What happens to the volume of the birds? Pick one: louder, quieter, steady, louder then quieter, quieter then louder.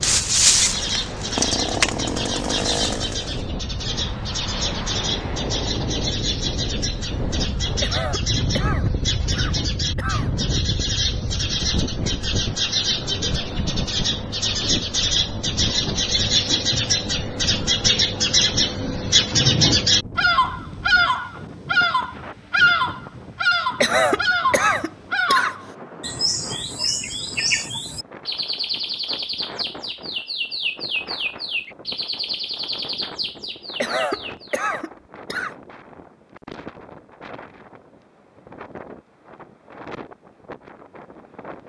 louder then quieter.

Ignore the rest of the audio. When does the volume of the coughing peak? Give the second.
24 s.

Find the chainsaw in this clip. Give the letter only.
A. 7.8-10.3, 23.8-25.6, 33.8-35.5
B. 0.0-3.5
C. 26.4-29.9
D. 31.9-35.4
B.